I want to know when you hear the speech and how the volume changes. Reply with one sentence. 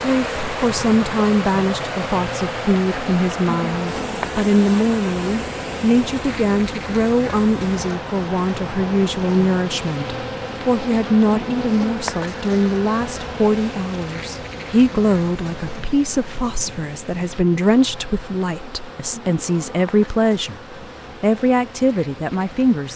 The speech can be heard from 0.0 to 22.9 s, at a steady volume.